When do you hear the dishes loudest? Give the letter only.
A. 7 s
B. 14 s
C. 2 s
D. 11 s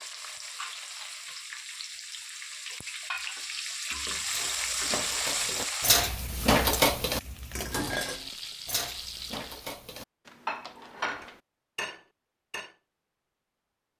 A.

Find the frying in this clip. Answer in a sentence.
The frying can be heard from 0.0 to 9.8 s.